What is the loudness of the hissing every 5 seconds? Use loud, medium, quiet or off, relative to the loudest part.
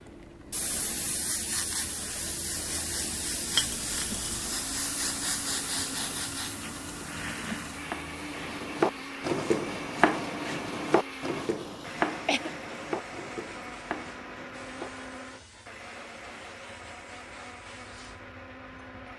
loud, loud, quiet, quiet.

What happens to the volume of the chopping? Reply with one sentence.
The loudness of the chopping goes down.